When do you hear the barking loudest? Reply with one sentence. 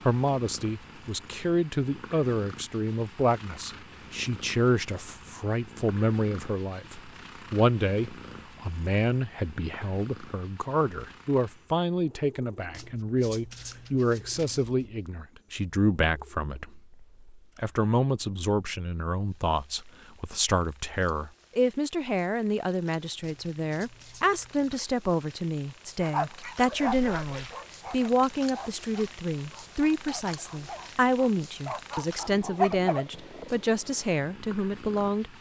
The volume of the barking peaks at 33 seconds.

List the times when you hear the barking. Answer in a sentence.
You can hear the barking from 26.0 to 33.0 s.